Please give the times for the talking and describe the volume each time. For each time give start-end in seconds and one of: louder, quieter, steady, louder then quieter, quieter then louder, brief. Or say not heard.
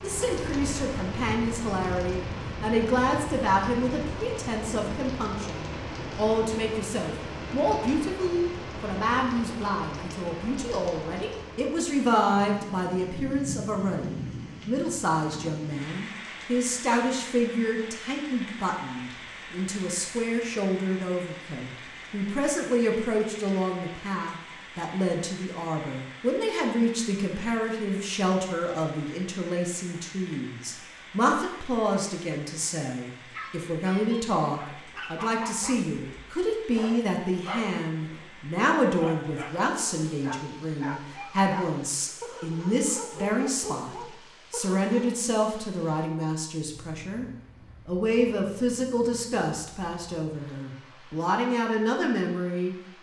0.0-47.2 steady
47.9-52.8 quieter then louder.